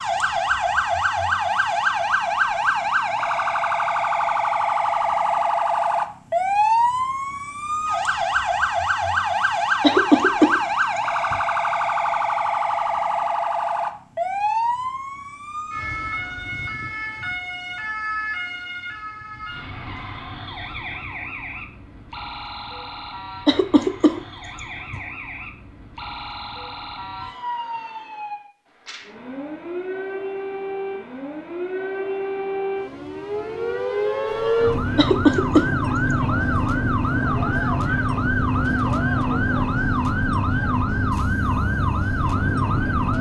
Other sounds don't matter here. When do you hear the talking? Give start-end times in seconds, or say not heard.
not heard.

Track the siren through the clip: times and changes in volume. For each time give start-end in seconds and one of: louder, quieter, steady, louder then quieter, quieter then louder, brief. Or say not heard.
0.0-43.1 quieter then louder.